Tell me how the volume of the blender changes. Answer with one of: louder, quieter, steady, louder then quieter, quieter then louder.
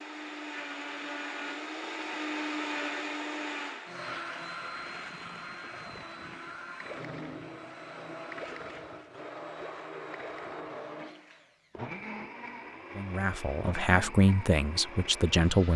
quieter.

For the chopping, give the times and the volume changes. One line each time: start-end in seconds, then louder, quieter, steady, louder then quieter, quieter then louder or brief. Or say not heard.
not heard.